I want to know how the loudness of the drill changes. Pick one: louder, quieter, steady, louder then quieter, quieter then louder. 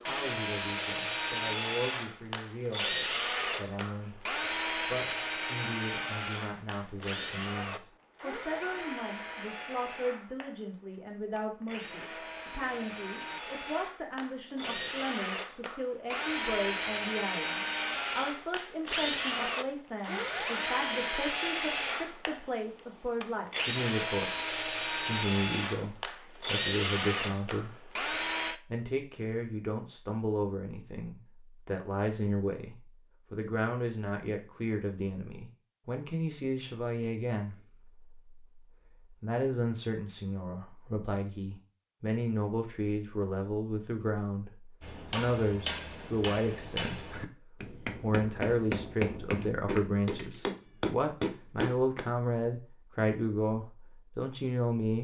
quieter then louder.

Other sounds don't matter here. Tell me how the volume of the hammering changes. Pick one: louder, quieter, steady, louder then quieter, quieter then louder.
louder.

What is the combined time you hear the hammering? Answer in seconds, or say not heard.
7 s.